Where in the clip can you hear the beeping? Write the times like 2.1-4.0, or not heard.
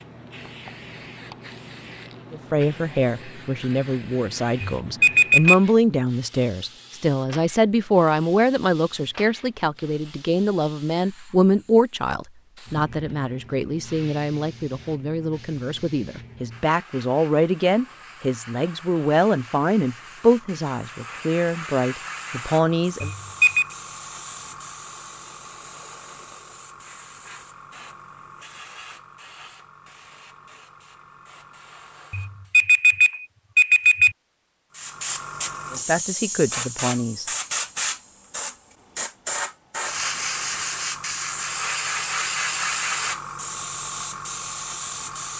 4.6-5.6, 23.0-23.6, 32.1-34.1.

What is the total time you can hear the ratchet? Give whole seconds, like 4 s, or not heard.
not heard.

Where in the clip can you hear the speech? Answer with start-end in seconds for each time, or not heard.
2.3-23.1, 35.7-37.2.